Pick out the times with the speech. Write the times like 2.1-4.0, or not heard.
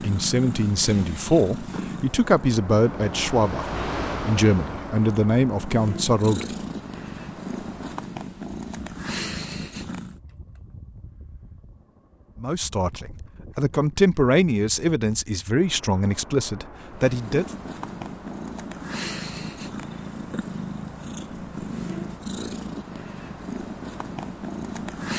0.0-6.5, 12.4-17.4.